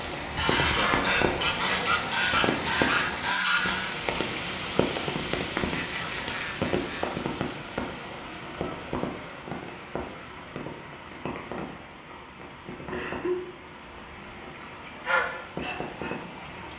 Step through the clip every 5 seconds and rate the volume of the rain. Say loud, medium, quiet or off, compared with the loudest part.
loud, loud, medium, medium.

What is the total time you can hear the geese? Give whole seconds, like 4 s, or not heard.
6 s.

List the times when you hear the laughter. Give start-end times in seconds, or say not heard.
0.8-2.1, 5.7-7.1, 12.9-13.5.